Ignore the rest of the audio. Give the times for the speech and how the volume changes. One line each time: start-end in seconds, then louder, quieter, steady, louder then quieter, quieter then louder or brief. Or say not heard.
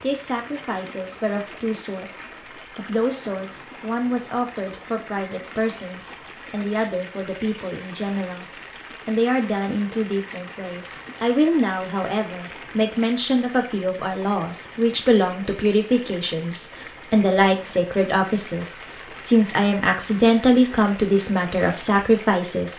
0.0-22.7 louder.